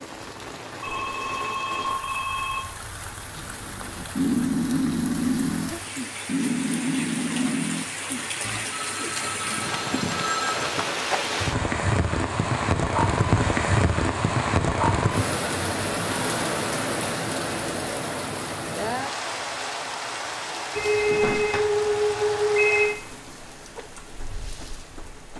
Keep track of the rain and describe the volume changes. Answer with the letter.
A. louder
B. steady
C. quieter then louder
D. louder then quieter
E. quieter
D.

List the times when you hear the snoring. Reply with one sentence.
The snoring can be heard from 3.4 to 8.7 s.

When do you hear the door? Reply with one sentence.
The door can be heard from 21.2 to 21.6 s.